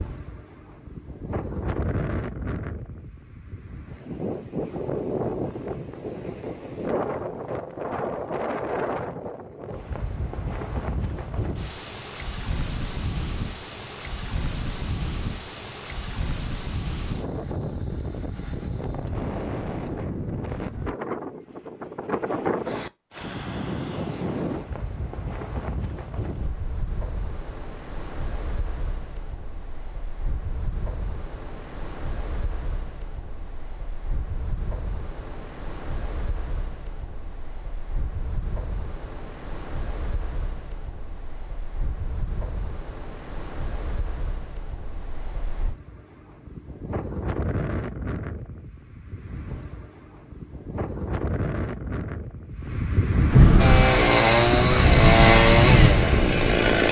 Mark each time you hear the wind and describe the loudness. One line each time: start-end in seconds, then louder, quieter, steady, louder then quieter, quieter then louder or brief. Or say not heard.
0.0-56.8 quieter then louder.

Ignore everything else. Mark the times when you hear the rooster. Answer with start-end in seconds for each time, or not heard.
not heard.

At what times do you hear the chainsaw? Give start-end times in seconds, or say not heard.
53.5-56.8.